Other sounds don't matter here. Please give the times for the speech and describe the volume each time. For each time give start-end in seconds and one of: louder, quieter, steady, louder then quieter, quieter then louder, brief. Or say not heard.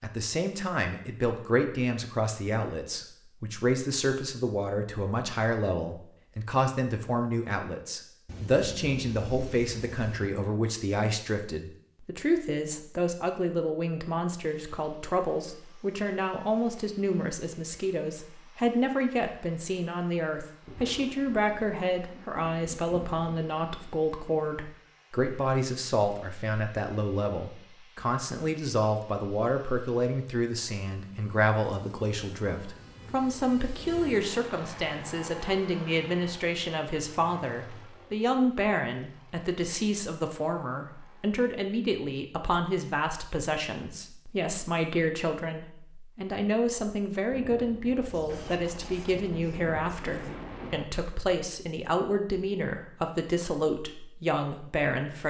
0.0-55.2 steady.